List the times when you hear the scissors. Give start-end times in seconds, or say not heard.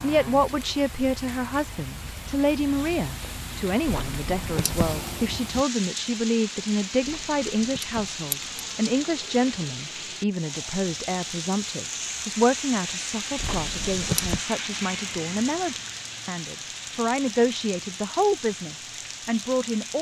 3.9-5.0, 7.0-8.3, 13.3-14.4.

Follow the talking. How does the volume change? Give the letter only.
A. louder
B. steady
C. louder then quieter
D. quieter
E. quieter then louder
B.